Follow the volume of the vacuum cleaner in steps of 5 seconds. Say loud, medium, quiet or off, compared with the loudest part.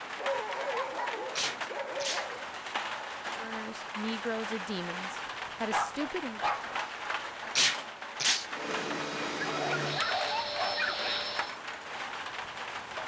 off, loud, loud.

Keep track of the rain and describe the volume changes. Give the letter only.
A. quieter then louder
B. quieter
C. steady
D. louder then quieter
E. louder
C.